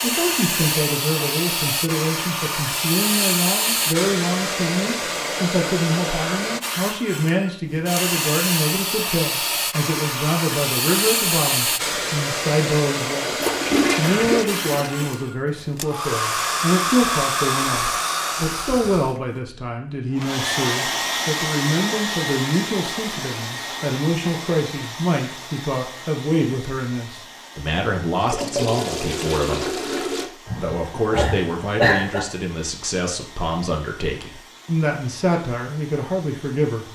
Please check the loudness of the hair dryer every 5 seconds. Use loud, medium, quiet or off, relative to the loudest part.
loud, loud, loud, loud, loud, quiet, quiet, quiet.